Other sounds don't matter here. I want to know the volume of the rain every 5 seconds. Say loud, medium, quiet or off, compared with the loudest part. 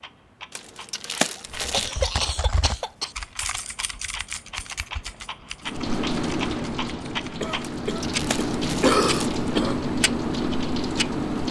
off, loud, loud.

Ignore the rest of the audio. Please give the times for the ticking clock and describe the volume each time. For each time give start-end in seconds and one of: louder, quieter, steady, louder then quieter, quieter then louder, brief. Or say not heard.
0.0-11.4 louder.